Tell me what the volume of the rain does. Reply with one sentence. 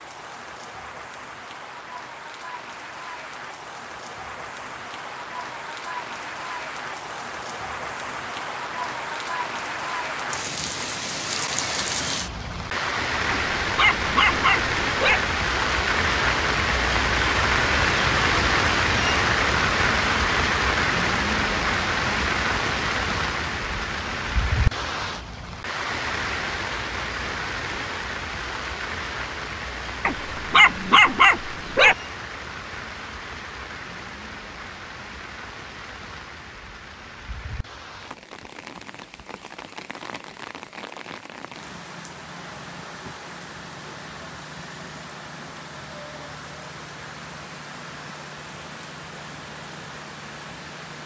The volume of the rain goes up, then down.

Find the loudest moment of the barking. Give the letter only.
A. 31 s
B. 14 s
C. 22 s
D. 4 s
A.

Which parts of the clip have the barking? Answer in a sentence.
You can hear the barking from 13.2 to 15.2 s and from 30.1 to 31.9 s.